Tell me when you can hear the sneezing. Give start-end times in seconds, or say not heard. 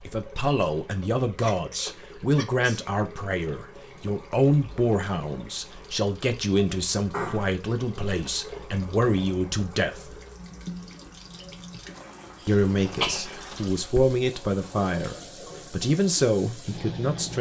1.4-2.9, 7.1-7.5, 12.4-14.2.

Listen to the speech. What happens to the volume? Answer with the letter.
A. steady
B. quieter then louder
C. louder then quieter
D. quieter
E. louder
A.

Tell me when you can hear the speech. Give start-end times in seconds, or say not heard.
0.0-10.2, 12.4-17.3.